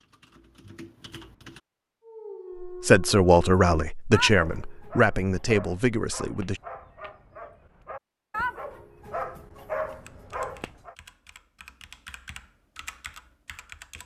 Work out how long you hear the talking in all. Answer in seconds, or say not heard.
4 s.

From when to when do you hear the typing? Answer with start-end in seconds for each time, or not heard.
0.0-1.6, 10.0-14.0.